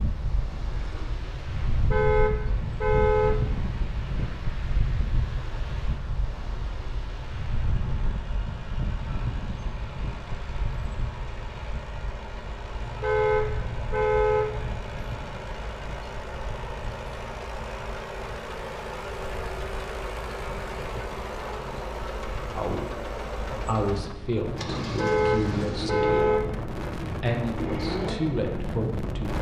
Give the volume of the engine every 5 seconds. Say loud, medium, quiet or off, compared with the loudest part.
quiet, quiet, medium, loud, loud, loud.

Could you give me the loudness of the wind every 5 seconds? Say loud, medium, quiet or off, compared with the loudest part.
loud, loud, medium, medium, medium, loud.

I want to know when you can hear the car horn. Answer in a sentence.
The car horn can be heard from 1.7 to 3.6 s, from 12.7 to 14.8 s and from 24.9 to 26.6 s.